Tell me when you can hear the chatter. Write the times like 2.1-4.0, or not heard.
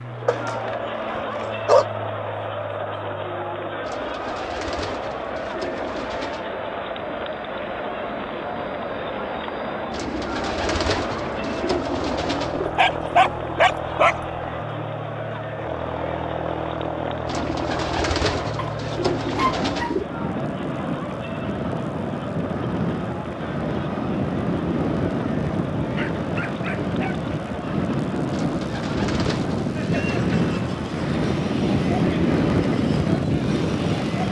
0.0-34.2.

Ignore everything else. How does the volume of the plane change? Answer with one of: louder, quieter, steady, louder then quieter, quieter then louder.
louder.